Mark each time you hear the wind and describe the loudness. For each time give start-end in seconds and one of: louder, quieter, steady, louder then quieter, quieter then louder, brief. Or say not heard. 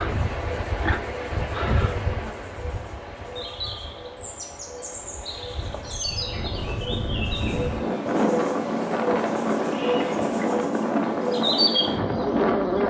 0.0-12.8 quieter then louder.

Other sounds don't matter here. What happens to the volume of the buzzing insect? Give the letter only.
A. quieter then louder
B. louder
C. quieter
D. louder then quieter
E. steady
B.